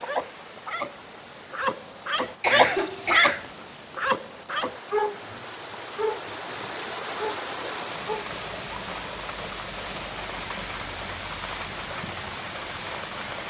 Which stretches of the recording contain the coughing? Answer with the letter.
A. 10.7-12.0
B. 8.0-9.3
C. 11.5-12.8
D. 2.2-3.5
D.